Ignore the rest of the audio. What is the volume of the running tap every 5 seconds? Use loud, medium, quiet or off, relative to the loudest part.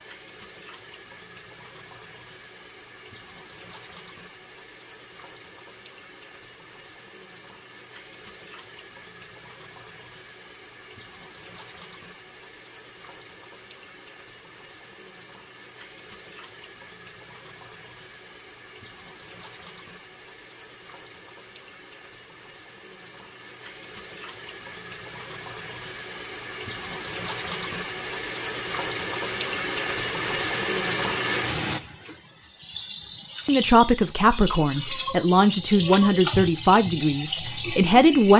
quiet, quiet, quiet, quiet, quiet, medium, loud, loud.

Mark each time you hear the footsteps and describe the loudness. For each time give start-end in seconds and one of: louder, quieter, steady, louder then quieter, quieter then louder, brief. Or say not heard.
not heard.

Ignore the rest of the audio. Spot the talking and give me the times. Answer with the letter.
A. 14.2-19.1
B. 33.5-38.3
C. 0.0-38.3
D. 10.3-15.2
B.